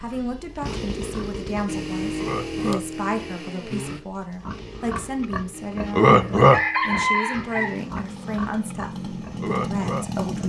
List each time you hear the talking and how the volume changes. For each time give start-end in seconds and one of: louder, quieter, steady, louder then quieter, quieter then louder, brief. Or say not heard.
0.0-10.4 steady.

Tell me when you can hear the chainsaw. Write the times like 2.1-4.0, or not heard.
0.0-10.4.